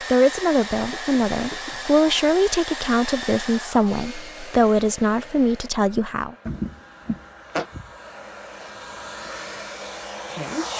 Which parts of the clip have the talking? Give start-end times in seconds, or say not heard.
0.1-6.3.